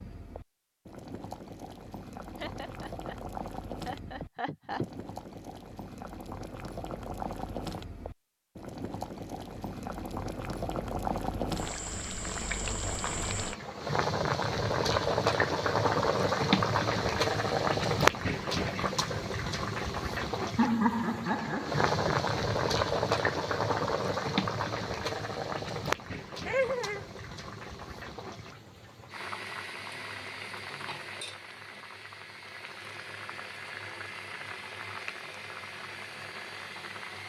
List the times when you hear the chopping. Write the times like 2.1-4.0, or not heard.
not heard.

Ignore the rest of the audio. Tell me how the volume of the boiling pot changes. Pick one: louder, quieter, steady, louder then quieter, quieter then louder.
louder then quieter.